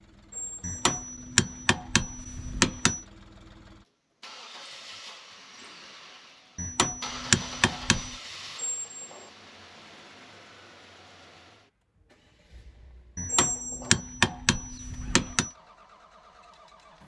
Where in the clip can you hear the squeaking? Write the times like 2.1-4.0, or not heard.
0.3-1.1, 8.6-9.3, 13.2-14.0.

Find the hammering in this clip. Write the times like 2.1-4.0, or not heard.
0.6-3.0, 6.5-8.2, 13.2-15.5.